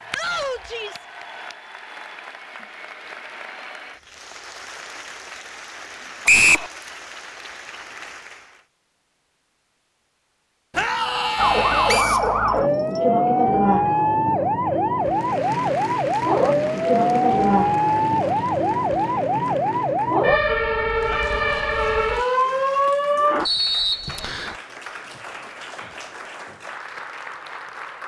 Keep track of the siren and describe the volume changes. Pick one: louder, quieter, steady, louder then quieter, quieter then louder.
steady.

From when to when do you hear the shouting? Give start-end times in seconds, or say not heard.
0.1-1.1, 10.8-12.1, 21.1-22.4.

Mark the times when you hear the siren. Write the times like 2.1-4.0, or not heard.
11.3-23.5.